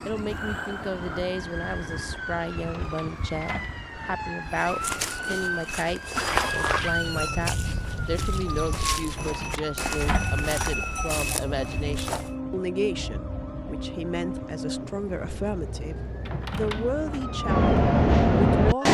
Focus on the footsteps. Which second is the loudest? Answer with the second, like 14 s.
6 s.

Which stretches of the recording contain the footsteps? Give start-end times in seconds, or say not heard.
4.5-12.4.